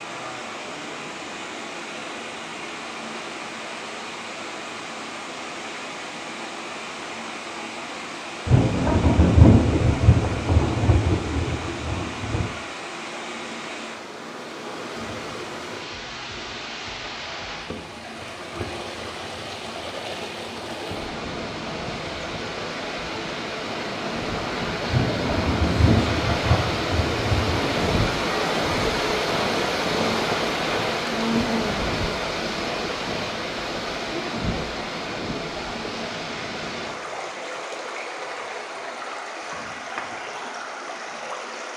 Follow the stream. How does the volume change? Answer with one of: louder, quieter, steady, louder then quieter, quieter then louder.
louder then quieter.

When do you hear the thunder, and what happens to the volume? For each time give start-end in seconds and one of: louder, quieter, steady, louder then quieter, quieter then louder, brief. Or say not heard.
8.4-12.6 quieter
24.9-27.6 brief.